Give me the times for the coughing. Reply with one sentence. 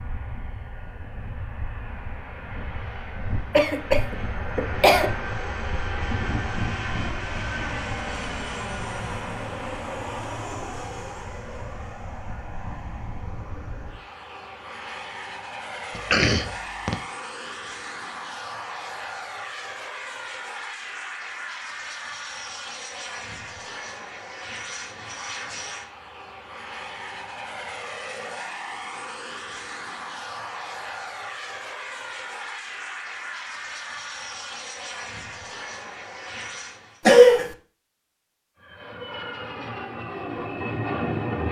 You can hear the coughing from 3.5 to 5.1 s, from 15.9 to 16.9 s and from 37.0 to 37.5 s.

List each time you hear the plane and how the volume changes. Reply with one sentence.
You can hear the plane from 0.0 to 37.0 s, at a steady volume; and briefly from 38.5 to 41.4 s.